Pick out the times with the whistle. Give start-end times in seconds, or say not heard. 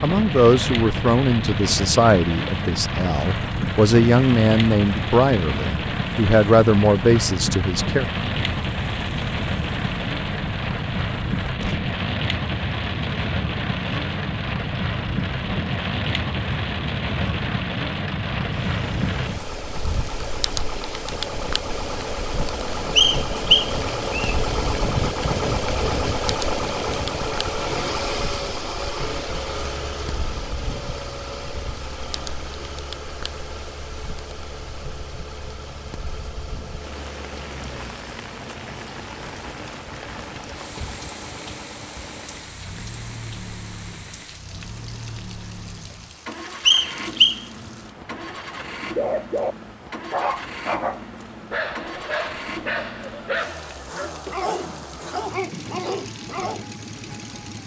22.9-24.4, 46.6-47.4.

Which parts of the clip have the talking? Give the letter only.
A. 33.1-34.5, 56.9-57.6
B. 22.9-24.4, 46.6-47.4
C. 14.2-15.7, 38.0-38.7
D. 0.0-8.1
D.